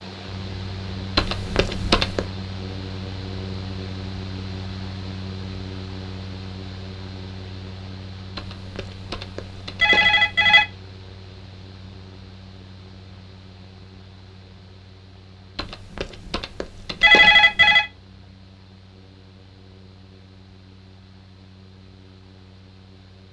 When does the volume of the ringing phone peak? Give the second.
17 s.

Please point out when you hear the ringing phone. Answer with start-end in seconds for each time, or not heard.
1.1-2.2, 8.3-10.7, 15.6-17.9.